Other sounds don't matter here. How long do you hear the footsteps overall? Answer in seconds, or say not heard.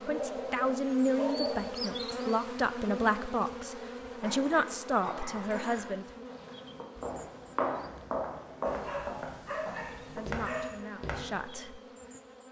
5 s.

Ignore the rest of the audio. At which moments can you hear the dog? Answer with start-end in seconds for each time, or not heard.
0.1-1.7, 4.2-5.9, 8.7-10.7.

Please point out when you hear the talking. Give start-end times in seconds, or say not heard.
0.1-6.2, 10.2-11.8.